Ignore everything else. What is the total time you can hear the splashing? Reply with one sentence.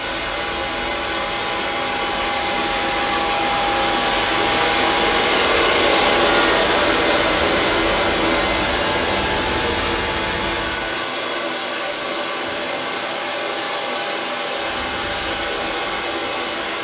The splashing can't be heard in this clip.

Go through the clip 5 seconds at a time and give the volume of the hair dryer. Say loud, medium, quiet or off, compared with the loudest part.
loud, loud, medium, medium.